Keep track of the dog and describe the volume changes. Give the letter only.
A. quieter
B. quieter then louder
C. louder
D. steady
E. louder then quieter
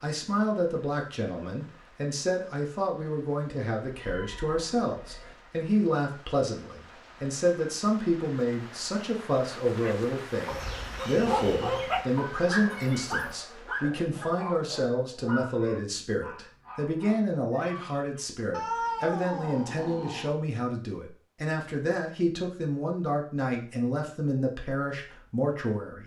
A.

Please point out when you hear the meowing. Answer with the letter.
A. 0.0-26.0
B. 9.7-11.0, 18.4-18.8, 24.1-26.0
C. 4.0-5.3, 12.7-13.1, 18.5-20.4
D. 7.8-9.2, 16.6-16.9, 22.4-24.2
C.